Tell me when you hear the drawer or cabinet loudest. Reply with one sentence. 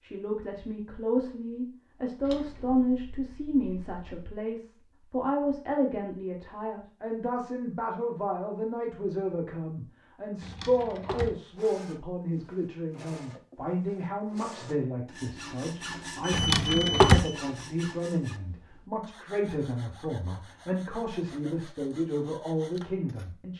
The loudest moment of the drawer or cabinet is at 17 seconds.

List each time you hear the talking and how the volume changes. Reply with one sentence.
The talking can be heard from 0.0 to 23.5 s, at a steady volume.